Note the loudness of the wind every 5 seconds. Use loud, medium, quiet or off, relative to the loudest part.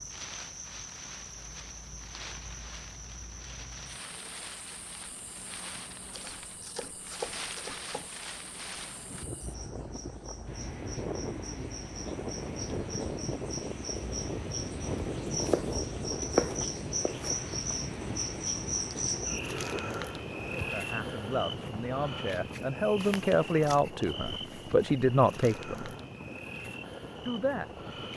medium, medium, loud, loud, medium, medium.